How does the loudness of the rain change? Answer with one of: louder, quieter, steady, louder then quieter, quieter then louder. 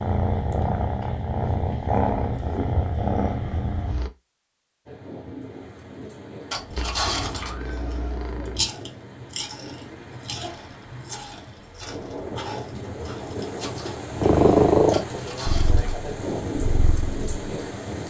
louder.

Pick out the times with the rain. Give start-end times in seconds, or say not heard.
4.8-18.0.